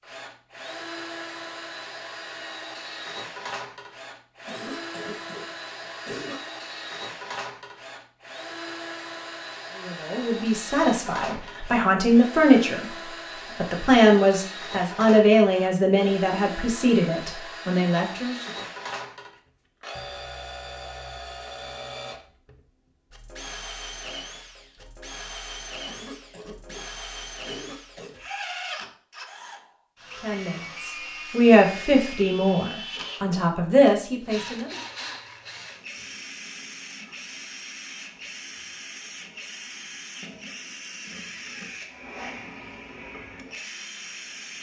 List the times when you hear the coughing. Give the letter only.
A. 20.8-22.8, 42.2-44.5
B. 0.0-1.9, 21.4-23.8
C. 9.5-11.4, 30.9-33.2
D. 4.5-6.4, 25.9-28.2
D.